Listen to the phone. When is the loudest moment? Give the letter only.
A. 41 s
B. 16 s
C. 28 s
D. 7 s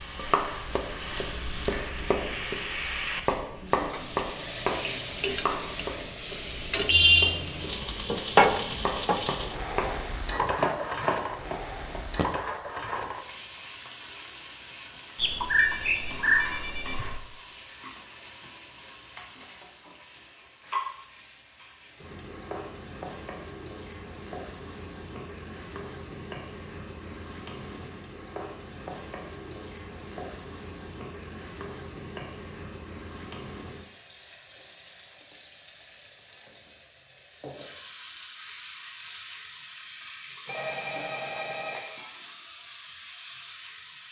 B.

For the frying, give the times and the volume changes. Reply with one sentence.
The frying can be heard from 0.0 to 44.0 s, getting quieter.